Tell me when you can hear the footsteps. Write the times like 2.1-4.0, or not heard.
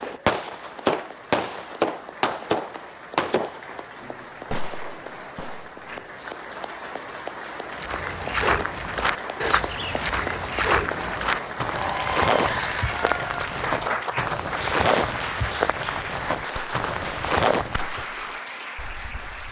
7.8-18.1.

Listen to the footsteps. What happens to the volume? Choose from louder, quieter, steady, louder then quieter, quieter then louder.
steady.